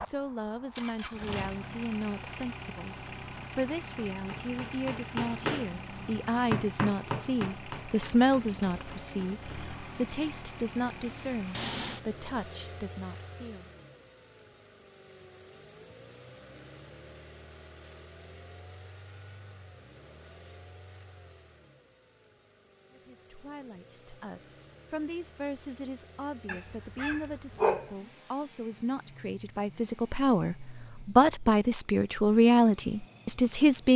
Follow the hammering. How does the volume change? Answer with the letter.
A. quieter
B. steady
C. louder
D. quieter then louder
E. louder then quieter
E.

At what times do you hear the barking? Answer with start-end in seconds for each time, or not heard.
26.4-27.9.